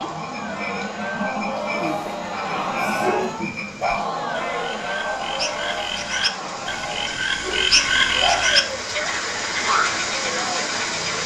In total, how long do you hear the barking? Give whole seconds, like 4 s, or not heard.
4 s.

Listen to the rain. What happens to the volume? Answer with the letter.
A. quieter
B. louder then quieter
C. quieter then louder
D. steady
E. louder
E.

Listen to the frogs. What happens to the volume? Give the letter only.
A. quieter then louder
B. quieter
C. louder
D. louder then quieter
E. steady
C.